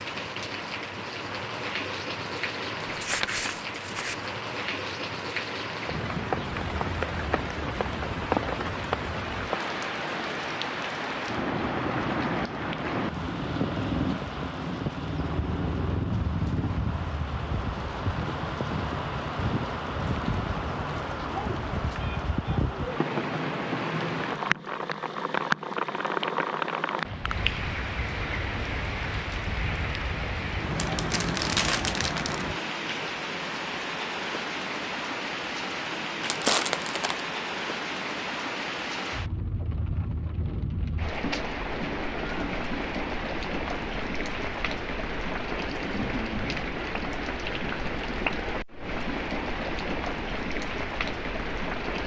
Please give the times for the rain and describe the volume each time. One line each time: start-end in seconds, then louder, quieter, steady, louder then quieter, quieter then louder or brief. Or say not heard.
0.0-52.0 steady.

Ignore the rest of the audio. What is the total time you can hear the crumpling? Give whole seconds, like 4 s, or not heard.
4 s.